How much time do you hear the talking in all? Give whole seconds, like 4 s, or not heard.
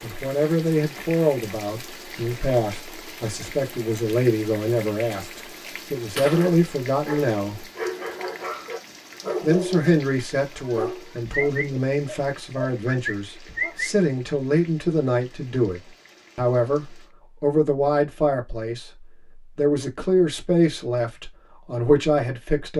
21 s.